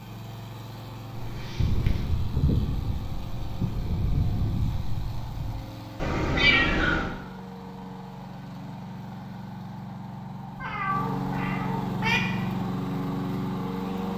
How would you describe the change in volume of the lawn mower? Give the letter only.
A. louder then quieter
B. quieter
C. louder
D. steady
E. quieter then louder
C.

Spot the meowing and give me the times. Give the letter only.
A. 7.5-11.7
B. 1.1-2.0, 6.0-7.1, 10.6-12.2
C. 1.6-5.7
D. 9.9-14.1
B.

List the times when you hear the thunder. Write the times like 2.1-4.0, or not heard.
1.6-5.7.